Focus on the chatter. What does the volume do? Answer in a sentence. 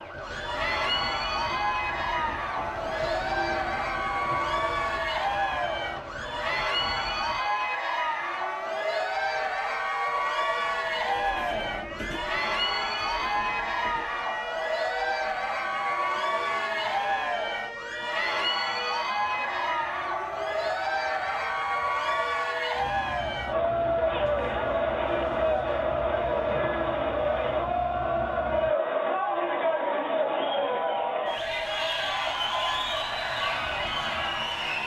The volume of the chatter stays about the same.